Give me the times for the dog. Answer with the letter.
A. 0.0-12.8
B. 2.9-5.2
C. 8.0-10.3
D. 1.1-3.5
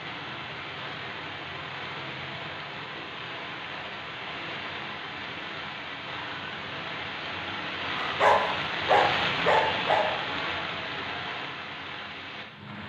C.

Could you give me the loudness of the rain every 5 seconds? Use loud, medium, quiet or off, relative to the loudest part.
medium, loud, loud.